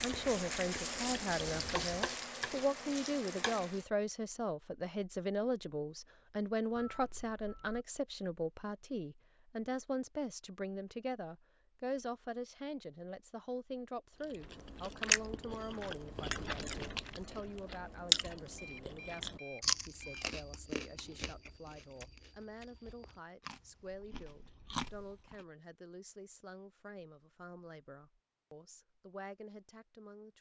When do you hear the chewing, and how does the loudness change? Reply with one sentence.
The chewing can be heard briefly from 0.0 to 2.1 s; and from 14.2 to 25.4 s, getting quieter then louder.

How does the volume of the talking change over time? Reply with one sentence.
The loudness of the talking goes down.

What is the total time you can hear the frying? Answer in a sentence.
You can hear the frying for 4 seconds altogether.